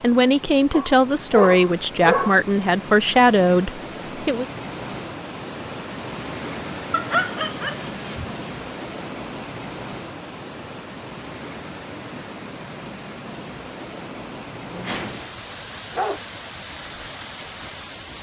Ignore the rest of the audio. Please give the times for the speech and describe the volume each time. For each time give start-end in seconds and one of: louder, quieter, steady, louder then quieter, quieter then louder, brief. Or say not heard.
0.0-4.5 steady.